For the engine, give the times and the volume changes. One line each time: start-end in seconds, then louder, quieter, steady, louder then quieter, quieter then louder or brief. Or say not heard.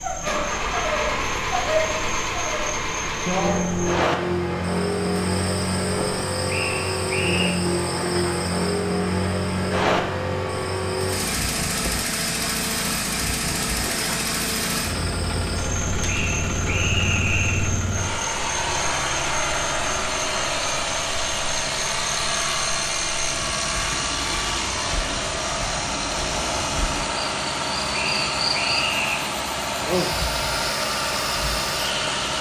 0.0-32.3 steady.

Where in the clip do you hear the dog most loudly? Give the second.
2 s.